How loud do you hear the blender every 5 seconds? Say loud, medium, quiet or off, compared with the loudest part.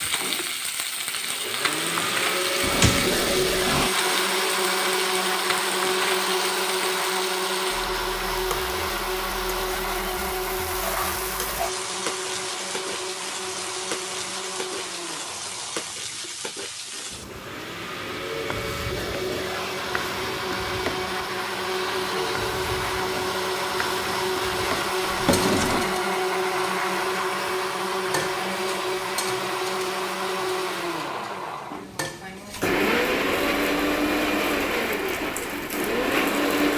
loud, loud, medium, medium, loud, loud, loud, loud.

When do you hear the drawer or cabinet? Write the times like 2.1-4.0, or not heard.
2.6-3.9, 25.0-26.0.